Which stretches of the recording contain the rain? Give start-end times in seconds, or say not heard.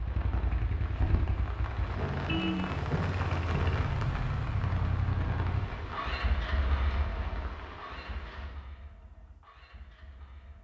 0.0-8.5.